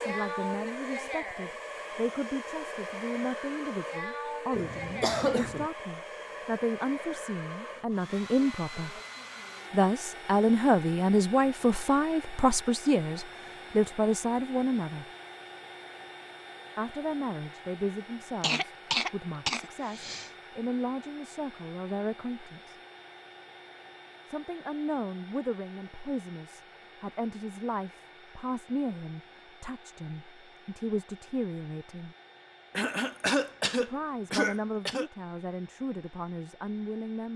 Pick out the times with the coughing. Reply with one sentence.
You can hear the coughing from 4.5 to 5.7 s, from 18.4 to 20.3 s and from 32.7 to 35.0 s.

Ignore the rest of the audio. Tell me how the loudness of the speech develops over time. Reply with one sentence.
The volume of the speech goes up, then down.